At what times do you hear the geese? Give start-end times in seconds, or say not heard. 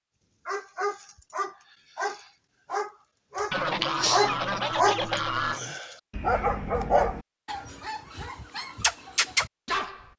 3.5-5.6.